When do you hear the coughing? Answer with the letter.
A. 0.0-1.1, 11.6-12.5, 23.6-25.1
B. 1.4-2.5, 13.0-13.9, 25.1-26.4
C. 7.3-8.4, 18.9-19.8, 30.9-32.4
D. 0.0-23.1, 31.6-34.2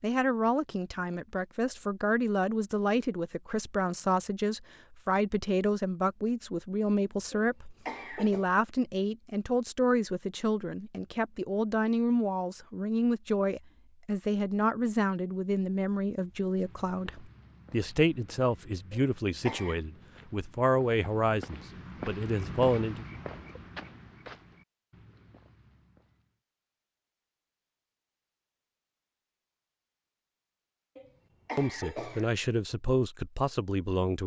C.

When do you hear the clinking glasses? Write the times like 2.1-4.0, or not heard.
not heard.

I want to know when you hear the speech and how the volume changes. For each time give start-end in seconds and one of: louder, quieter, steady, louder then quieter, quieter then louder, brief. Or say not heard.
0.0-23.1 steady
31.6-34.2 brief.